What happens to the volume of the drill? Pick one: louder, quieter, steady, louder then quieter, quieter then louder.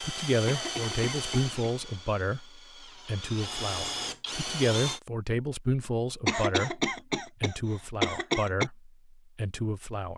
quieter then louder.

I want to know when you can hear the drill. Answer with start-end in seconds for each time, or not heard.
0.0-5.0.